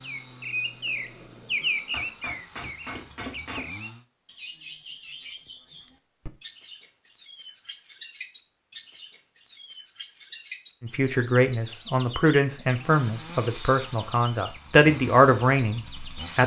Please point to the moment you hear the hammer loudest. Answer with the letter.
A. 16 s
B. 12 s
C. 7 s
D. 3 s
D.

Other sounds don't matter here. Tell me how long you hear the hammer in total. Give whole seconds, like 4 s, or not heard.
2 s.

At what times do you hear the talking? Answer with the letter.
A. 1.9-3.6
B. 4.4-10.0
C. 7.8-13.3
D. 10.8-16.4
D.